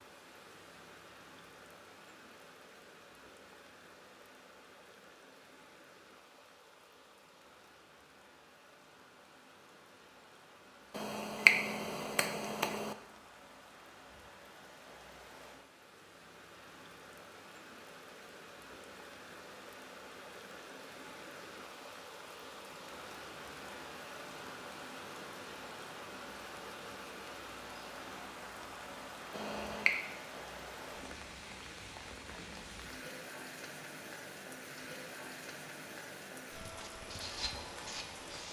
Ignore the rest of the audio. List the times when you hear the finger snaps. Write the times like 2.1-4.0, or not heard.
10.9-12.9, 29.3-29.9.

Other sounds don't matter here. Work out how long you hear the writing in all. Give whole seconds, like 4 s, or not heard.
2 s.